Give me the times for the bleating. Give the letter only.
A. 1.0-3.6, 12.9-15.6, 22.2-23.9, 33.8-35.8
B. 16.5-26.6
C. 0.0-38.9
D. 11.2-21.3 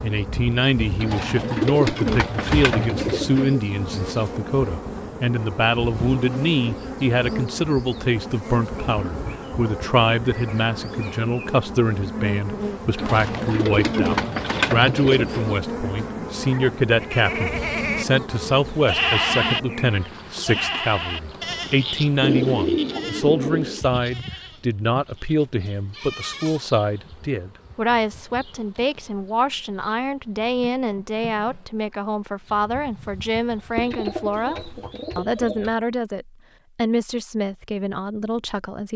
B.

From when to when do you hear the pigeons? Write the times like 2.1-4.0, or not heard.
1.0-3.6, 12.9-15.6, 22.2-23.9, 33.8-35.8.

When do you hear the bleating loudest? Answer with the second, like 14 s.
19 s.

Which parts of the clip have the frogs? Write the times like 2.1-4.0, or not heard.
not heard.